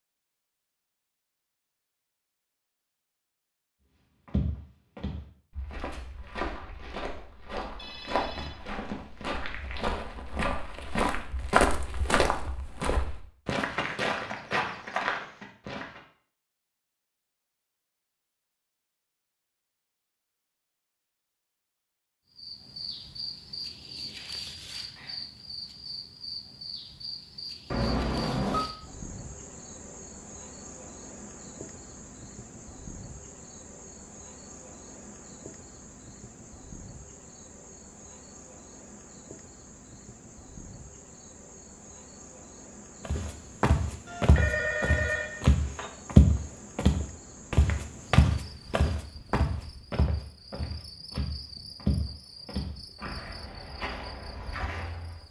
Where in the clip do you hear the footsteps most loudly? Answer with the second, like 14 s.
46 s.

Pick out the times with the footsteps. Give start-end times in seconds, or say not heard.
4.2-16.0, 43.0-55.2.